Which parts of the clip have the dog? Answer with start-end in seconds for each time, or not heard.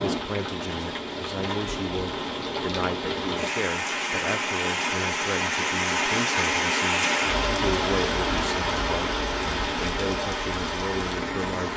not heard.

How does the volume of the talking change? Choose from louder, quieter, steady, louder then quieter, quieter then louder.
steady.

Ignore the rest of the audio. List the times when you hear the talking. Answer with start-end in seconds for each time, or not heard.
0.0-11.7.